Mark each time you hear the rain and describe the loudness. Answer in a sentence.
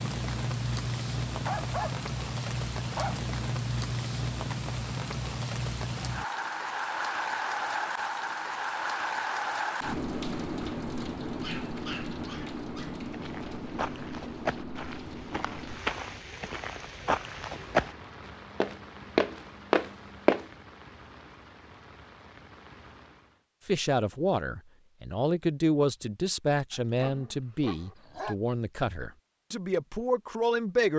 You can hear the rain from 0.0 to 23.4 s, getting quieter.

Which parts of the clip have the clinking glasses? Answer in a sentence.
The clinking glasses can't be heard in this clip.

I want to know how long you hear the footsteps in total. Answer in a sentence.
You can hear the footsteps for 7 seconds altogether.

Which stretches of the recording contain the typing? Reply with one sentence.
The typing can't be heard in this clip.